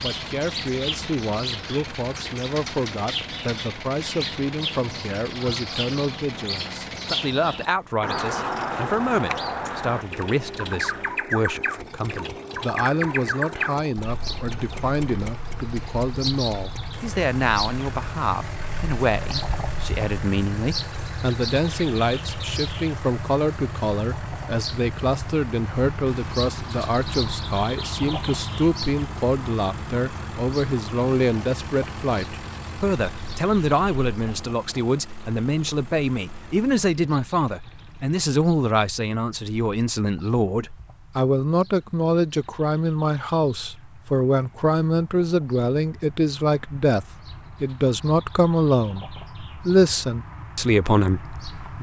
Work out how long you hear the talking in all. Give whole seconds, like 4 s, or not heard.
52 s.